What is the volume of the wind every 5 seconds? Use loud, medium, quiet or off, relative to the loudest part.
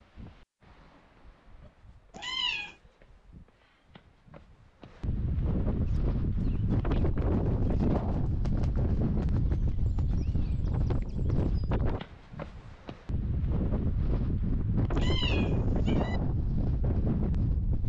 quiet, loud, loud, loud.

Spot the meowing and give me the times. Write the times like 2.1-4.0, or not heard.
2.1-2.8, 14.9-16.2.